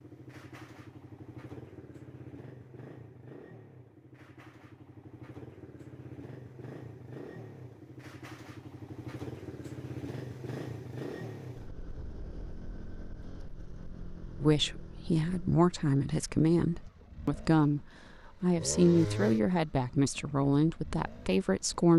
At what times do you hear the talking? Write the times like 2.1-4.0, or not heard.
14.4-21.9.